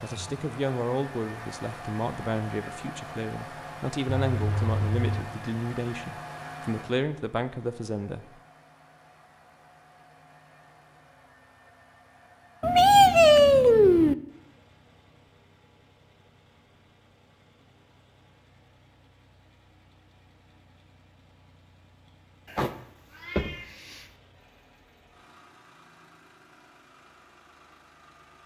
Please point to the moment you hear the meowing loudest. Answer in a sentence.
The volume of the meowing peaks at 13 seconds.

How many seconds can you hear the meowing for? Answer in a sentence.
The meowing can be heard for 4 seconds in total.